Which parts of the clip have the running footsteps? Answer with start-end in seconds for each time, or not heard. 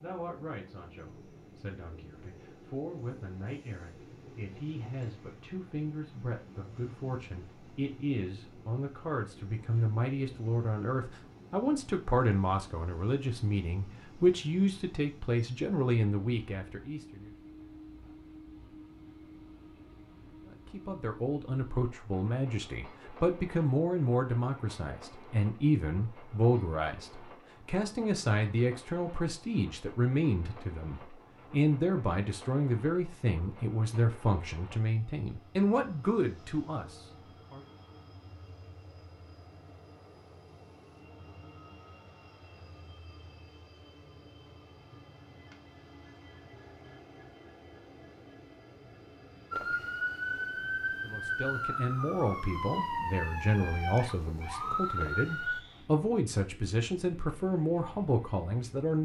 not heard.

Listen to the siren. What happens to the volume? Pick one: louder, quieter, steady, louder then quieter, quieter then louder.
steady.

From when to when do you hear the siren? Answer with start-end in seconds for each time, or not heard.
49.5-55.6.